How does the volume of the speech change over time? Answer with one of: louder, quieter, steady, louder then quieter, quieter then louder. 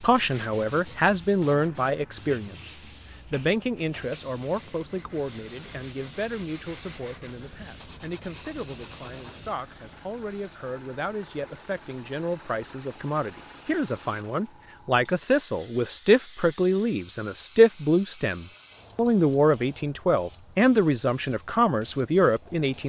quieter then louder.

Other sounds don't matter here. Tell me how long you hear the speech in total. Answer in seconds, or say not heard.
23 s.